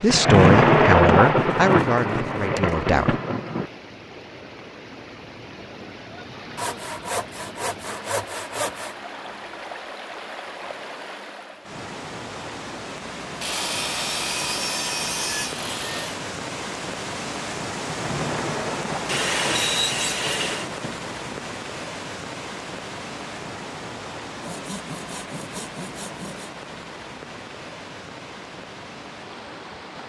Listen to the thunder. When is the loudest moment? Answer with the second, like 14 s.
1 s.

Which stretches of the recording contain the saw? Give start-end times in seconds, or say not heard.
1.2-2.8, 6.5-8.9, 13.4-16.2, 19.1-20.7, 24.4-26.5.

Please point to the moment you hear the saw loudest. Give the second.
20 s.